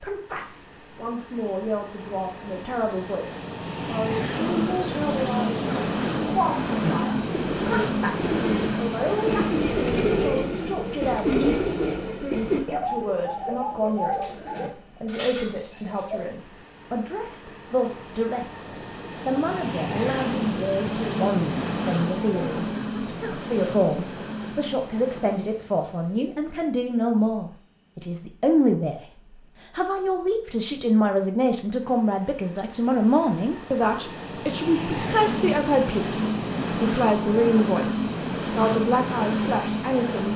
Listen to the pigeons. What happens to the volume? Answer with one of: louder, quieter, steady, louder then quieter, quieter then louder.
louder then quieter.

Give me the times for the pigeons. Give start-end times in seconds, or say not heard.
4.3-16.2.